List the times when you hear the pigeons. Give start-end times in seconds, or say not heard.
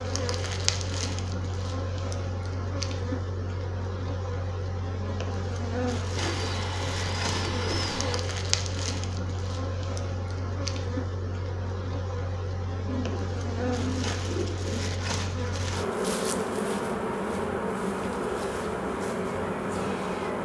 6.2-8.2, 12.8-14.9.